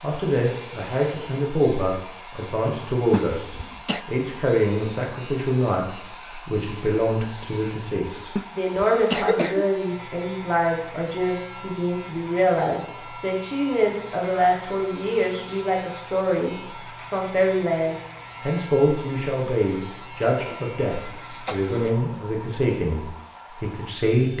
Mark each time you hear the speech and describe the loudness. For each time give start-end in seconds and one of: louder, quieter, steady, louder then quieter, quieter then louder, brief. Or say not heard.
0.0-24.3 steady.